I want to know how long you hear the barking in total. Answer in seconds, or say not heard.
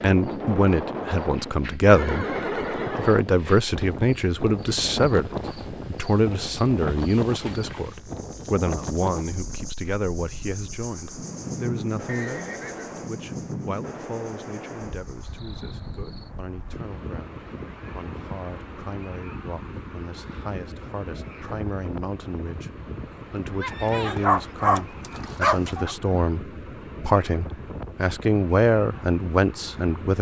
2 s.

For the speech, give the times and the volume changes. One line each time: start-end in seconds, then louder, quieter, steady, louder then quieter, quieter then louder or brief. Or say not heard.
0.0-30.1 quieter then louder.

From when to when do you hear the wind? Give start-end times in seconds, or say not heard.
0.0-30.1.